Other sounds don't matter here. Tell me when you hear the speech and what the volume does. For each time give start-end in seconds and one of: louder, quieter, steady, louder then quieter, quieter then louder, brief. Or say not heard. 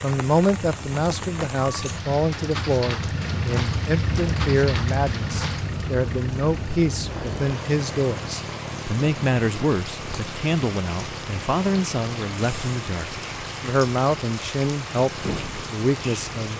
0.0-16.5 steady.